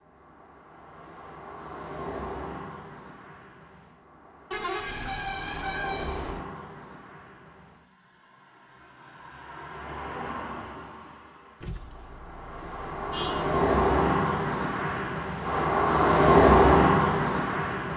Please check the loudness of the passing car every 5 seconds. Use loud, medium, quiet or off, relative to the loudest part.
quiet, quiet, medium, loud.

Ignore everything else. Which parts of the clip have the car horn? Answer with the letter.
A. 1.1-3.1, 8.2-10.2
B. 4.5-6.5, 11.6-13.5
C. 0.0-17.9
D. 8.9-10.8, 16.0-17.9
B.